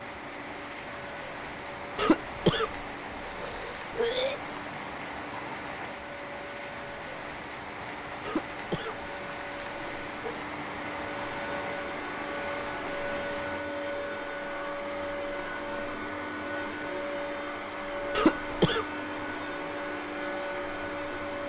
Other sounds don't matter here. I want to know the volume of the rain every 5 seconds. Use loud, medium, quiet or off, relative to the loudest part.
loud, loud, loud, off, off.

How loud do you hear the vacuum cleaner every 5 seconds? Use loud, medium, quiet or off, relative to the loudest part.
medium, medium, loud, loud, loud.